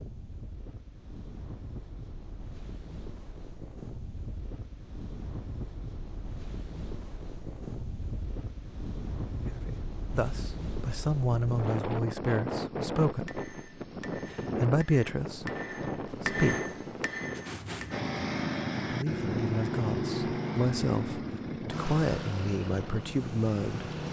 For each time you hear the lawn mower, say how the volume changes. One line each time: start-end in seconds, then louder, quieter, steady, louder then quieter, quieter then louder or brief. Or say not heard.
17.9-24.0 quieter.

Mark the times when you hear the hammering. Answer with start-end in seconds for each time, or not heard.
13.1-18.1.